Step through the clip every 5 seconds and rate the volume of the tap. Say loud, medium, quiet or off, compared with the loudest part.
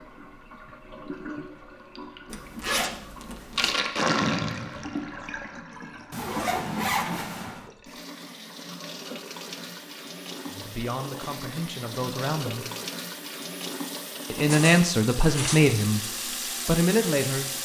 loud, medium, medium, loud.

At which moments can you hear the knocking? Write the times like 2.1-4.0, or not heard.
not heard.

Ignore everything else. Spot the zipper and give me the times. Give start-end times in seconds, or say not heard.
2.3-3.8, 6.1-7.7, 14.4-15.7.